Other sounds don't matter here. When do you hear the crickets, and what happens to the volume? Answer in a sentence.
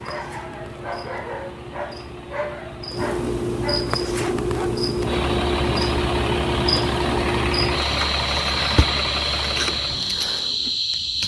The crickets can be heard from 0.0 to 11.2 s, getting louder.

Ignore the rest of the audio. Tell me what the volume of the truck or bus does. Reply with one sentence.
The volume of the truck or bus goes up.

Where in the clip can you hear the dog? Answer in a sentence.
The dog can be heard from 0.0 to 4.8 s.